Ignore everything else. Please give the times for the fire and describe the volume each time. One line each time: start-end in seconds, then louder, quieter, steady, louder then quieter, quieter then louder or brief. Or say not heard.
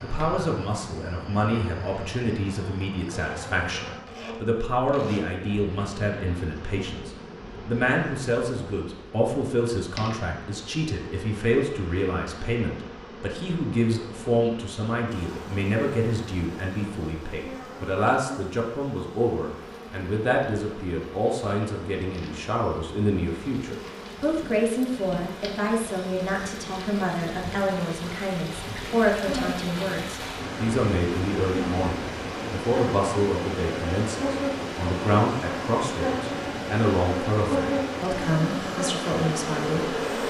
not heard.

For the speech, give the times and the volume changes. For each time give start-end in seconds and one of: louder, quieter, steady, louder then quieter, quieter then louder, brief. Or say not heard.
0.0-40.0 steady.